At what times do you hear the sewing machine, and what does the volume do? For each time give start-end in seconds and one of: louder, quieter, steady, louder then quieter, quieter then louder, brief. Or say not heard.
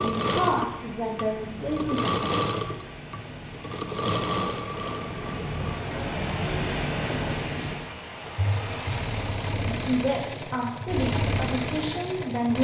0.0-12.6 quieter then louder.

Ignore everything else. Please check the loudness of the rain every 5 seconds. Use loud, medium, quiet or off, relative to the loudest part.
medium, loud, off.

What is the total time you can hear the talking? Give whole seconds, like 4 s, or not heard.
5 s.